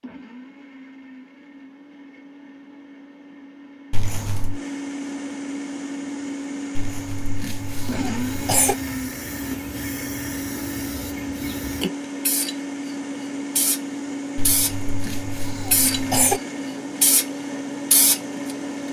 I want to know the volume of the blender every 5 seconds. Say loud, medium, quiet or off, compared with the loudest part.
medium, loud, loud, loud.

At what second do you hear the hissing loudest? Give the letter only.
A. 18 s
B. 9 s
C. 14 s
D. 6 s
A.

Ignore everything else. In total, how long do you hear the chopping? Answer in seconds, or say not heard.
not heard.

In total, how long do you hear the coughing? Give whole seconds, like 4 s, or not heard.
5 s.